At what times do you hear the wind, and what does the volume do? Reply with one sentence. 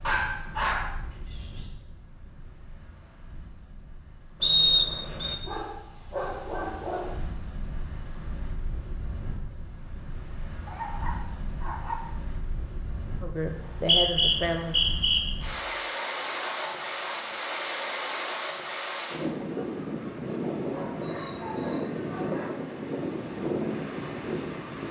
You can hear the wind from 0.0 to 24.8 s, getting louder.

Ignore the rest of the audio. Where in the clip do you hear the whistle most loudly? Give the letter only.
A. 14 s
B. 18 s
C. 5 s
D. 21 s
C.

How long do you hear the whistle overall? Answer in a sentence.
You can hear the whistle for 3 seconds altogether.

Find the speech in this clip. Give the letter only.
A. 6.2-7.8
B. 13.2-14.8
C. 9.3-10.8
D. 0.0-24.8
B.